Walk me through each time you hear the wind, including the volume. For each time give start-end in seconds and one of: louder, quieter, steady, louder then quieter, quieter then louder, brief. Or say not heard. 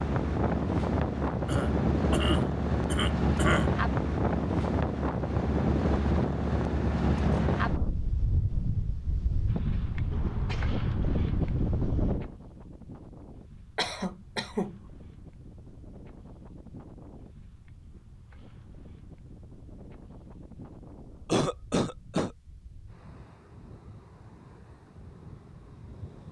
0.0-26.2 quieter.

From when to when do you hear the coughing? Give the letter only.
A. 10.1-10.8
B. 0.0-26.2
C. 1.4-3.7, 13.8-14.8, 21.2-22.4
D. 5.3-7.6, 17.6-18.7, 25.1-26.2
C.